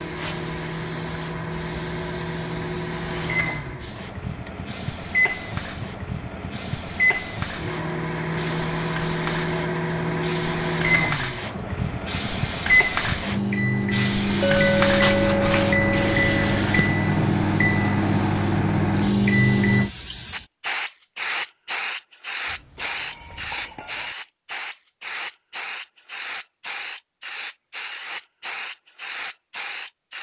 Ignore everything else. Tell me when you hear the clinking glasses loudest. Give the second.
15 s.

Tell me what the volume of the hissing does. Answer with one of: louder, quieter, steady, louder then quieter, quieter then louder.
louder then quieter.